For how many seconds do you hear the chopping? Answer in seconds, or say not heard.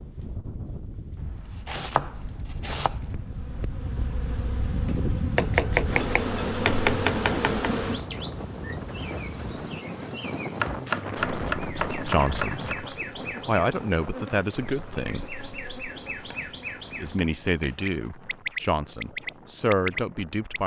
8 s.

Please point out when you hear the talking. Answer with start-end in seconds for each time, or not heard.
11.9-12.7, 13.4-15.2, 17.0-20.6.